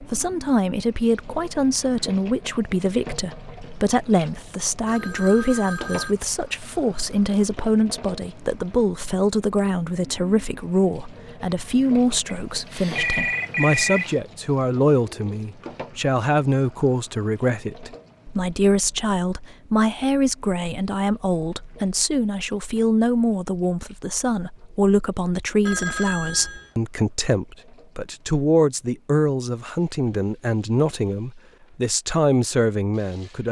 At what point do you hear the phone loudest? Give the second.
14 s.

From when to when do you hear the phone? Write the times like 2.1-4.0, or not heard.
4.8-6.2, 12.2-14.1, 25.6-26.7.